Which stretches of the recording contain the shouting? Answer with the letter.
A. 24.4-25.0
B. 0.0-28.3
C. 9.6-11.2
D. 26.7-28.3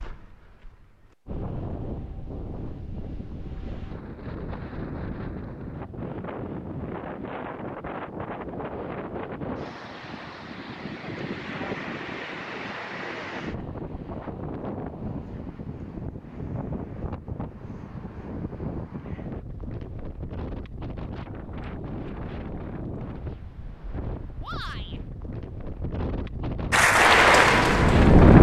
A.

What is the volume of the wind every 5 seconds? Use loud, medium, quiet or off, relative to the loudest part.
quiet, quiet, quiet, quiet, quiet, loud.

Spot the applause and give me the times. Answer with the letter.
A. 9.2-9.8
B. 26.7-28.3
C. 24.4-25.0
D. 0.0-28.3
B.